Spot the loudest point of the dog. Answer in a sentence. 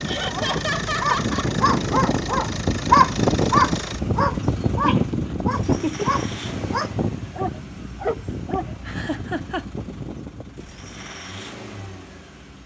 The volume of the dog peaks at 3 seconds.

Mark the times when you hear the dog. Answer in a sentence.
You can hear the dog from 0.1 to 9.2 s.